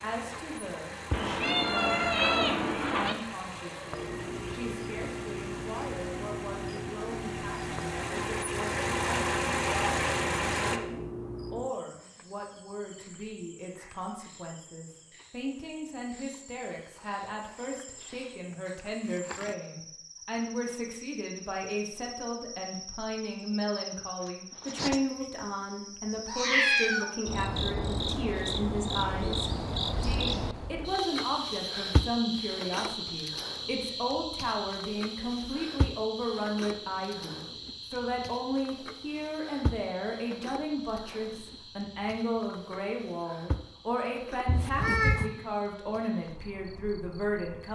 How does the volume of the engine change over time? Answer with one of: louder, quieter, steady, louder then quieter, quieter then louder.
louder.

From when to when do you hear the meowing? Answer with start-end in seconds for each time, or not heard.
1.1-3.1, 26.2-27.1, 44.5-45.2.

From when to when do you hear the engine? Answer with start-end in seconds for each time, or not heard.
0.0-10.8.